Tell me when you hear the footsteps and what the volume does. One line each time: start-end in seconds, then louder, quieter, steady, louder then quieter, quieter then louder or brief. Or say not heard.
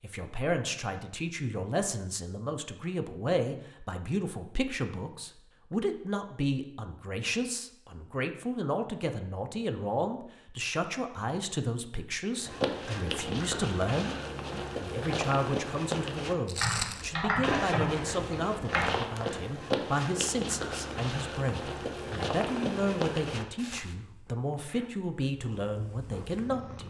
12.4-23.9 steady.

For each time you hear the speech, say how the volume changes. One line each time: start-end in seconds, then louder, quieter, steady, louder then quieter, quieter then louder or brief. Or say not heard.
0.0-26.8 steady.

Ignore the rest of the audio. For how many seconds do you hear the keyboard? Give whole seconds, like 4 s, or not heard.
2 s.